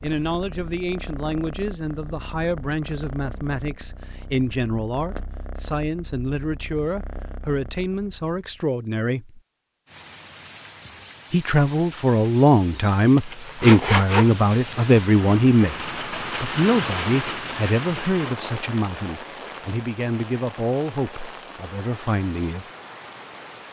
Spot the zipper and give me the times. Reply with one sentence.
The zipper can be heard from 13.2 to 14.9 s.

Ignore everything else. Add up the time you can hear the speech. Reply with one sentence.
You can hear the speech for 21 seconds altogether.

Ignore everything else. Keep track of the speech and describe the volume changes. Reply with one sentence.
The volume of the speech goes up, then down.